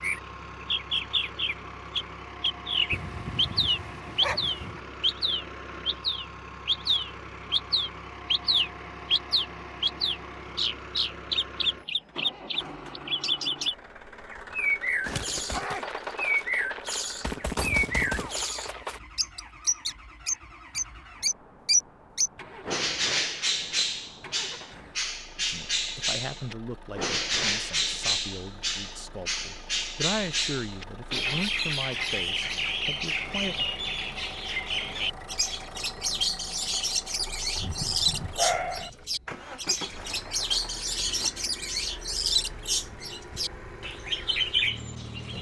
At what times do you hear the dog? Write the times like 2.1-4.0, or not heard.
2.9-4.8, 37.5-38.9.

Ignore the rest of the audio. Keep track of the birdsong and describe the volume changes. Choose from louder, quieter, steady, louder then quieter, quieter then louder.
steady.